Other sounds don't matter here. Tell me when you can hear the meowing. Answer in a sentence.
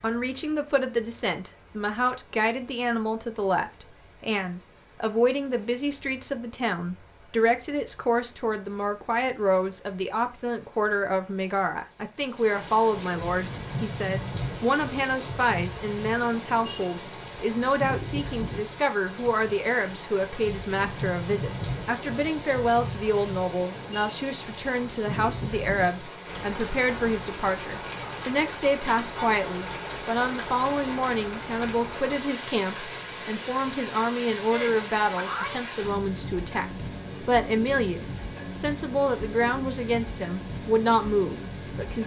The meowing can be heard from 12.8 to 13.5 s and from 34.5 to 35.6 s.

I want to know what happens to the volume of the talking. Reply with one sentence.
The loudness of the talking stays about the same.